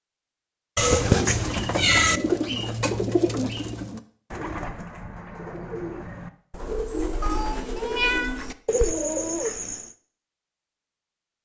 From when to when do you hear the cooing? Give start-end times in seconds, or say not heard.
0.8-9.9.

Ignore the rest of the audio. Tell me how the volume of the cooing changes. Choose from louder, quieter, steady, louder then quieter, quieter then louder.
quieter then louder.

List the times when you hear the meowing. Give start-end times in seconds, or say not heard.
0.8-2.2, 7.2-8.3.